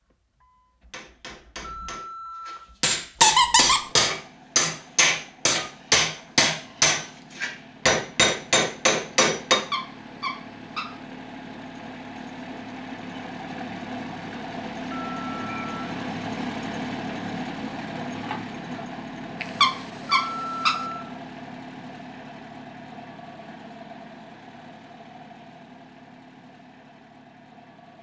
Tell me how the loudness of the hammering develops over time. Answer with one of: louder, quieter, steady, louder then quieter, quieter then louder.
louder.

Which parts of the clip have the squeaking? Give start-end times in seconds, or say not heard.
3.2-3.9, 9.5-10.9, 19.4-20.8.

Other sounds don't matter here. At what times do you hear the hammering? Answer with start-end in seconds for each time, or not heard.
0.9-9.6.